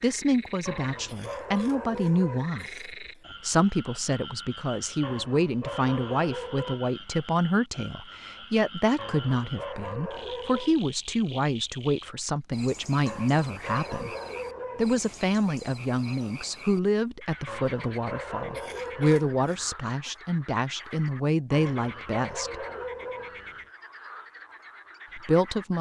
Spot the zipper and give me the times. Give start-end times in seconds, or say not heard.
not heard.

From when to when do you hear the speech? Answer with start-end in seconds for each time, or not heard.
0.0-14.2, 14.8-22.6, 25.1-25.7.